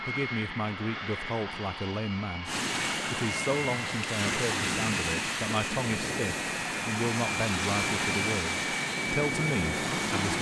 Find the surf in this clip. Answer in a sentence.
You can hear the surf from 2.5 to 10.3 s.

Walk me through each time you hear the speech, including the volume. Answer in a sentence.
The speech can be heard from 0.0 to 10.3 s, at a steady volume.